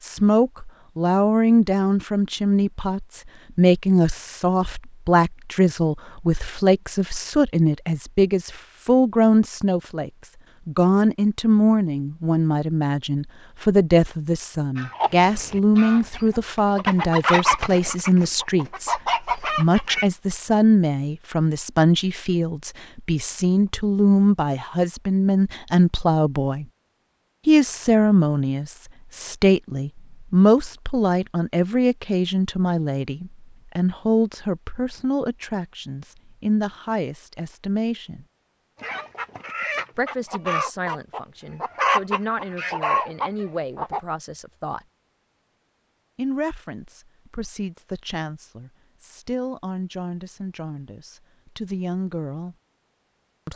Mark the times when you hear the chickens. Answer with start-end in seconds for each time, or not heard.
14.8-20.1, 38.8-44.0.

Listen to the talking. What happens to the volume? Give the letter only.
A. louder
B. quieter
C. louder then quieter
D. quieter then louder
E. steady
B.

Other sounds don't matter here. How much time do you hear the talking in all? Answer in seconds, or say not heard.
49 s.